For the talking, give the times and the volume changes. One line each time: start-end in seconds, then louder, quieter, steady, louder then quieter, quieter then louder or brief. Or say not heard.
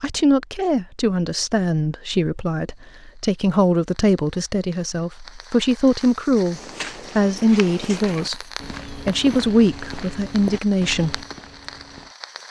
0.0-11.2 steady.